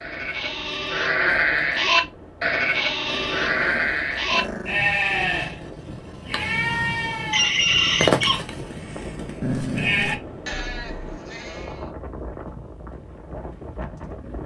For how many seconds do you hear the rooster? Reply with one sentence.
You can hear the rooster for 2 seconds altogether.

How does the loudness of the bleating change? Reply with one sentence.
The loudness of the bleating goes down.